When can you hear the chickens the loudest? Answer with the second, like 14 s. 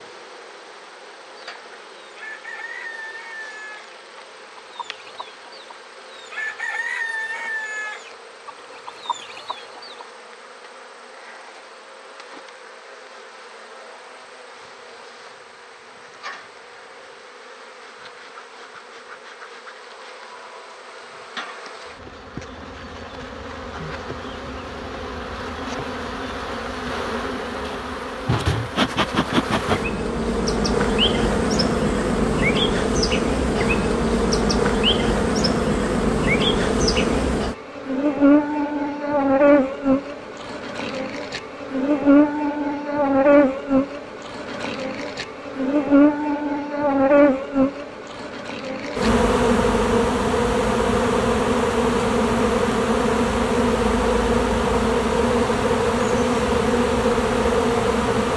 7 s.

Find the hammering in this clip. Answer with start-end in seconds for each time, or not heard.
not heard.